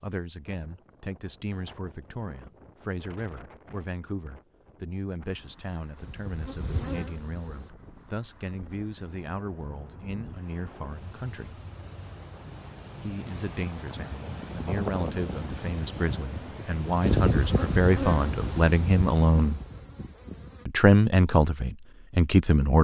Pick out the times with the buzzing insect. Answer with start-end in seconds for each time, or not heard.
6.0-7.7, 17.0-20.6.